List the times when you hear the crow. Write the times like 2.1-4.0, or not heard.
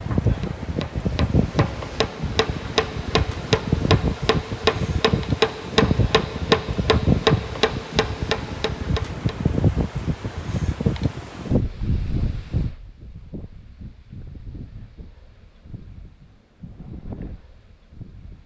not heard.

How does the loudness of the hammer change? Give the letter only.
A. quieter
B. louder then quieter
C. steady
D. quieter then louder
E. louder
B.